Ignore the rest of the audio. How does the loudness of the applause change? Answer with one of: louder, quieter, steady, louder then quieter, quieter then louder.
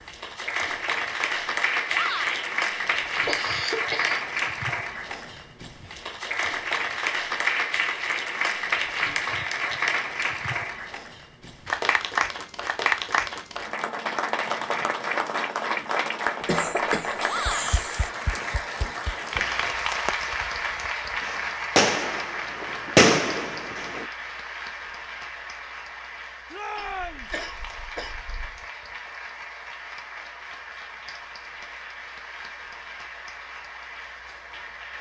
quieter.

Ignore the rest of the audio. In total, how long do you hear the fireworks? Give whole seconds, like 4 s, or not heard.
5 s.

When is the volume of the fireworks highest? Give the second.
23 s.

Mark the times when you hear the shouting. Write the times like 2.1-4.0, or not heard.
1.9-2.5, 17.2-17.8, 26.5-27.3.